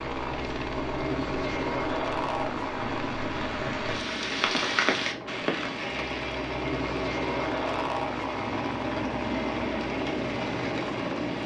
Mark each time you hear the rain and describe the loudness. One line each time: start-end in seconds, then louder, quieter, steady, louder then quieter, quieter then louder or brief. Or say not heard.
0.0-11.4 louder then quieter.